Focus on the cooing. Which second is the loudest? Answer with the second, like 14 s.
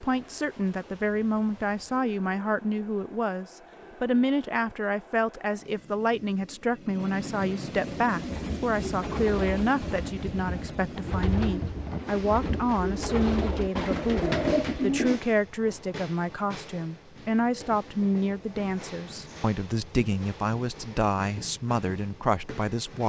14 s.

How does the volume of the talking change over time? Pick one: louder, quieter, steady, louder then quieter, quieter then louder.
steady.